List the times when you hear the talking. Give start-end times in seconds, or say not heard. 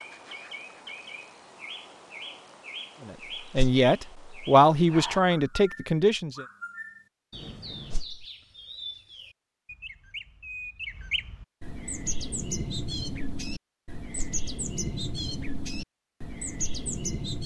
3.0-6.5.